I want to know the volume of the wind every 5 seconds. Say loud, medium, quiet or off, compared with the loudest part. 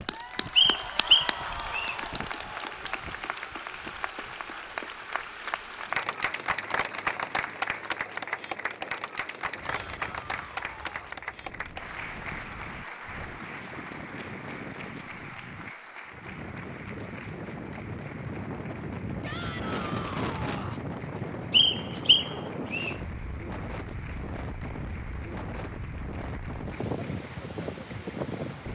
quiet, quiet, medium, loud, loud, loud.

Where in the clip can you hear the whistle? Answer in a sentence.
The whistle can be heard from 0.6 to 1.9 s and from 21.5 to 22.9 s.